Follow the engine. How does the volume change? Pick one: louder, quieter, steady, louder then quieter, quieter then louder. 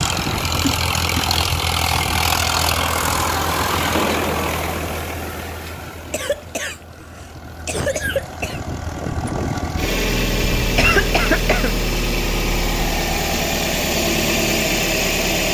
quieter then louder.